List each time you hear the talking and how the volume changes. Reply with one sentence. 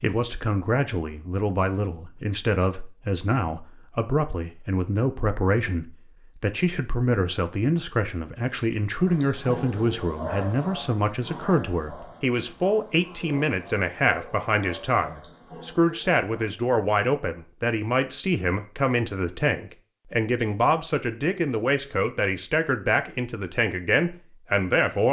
You can hear the talking from 0.0 to 25.0 s, at a steady volume.